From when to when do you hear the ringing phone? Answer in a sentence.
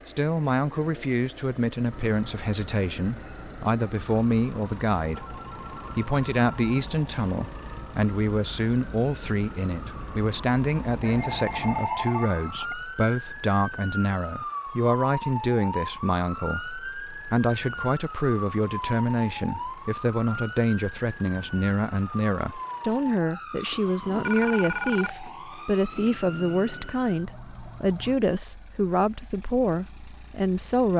You can hear the ringing phone from 5.1 to 6.8 s, from 11.0 to 12.8 s and from 23.7 to 25.2 s.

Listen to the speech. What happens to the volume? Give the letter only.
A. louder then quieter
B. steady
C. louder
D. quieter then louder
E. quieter
B.